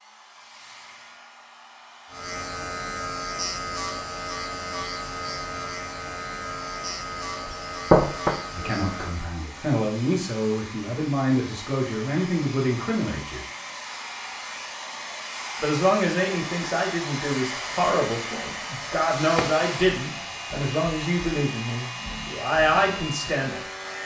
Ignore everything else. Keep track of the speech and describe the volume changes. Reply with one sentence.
The volume of the speech stays about the same.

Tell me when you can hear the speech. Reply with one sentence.
The speech can be heard from 8.6 to 13.4 s and from 15.6 to 23.6 s.